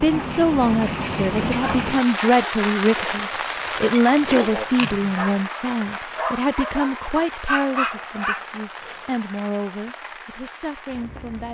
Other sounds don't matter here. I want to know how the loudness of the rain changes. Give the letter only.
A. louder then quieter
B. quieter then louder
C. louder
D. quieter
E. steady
D.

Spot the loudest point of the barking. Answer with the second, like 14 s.
8 s.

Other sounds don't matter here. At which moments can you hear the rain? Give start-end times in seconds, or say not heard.
0.0-11.4.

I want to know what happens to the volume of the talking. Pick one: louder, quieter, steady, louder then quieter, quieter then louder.
quieter.